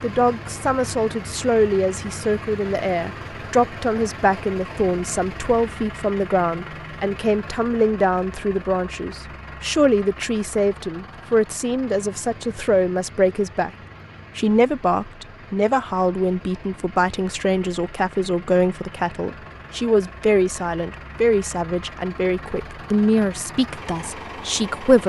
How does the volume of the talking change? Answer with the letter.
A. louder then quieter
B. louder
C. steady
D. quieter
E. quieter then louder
C.